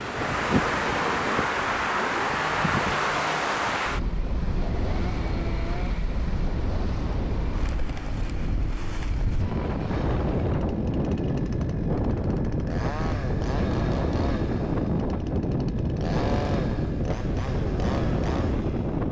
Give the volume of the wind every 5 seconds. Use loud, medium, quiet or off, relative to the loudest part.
loud, medium, loud, loud.